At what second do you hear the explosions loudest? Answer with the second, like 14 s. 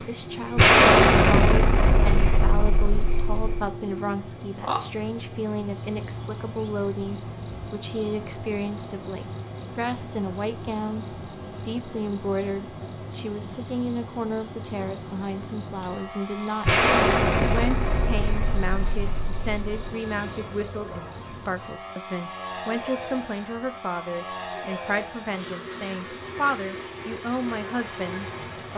1 s.